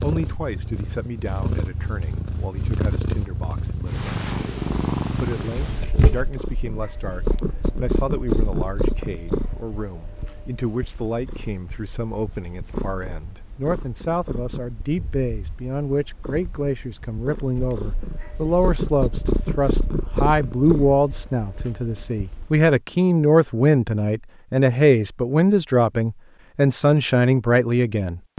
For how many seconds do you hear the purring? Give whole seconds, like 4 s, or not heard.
23 s.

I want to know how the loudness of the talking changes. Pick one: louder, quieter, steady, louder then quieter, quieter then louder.
louder.